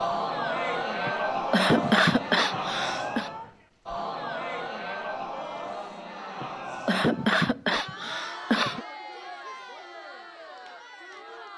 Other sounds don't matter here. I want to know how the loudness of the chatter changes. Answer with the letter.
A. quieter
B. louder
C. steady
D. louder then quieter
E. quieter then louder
A.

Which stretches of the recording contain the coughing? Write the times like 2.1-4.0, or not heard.
1.1-3.3, 6.4-8.8.